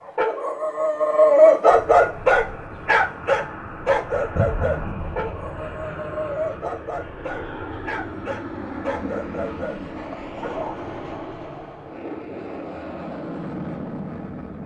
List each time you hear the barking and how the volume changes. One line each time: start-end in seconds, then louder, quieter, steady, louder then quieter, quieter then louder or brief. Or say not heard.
0.0-10.9 quieter.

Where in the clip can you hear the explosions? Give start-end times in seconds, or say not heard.
4.3-5.8.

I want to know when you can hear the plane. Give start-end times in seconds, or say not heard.
1.7-14.6.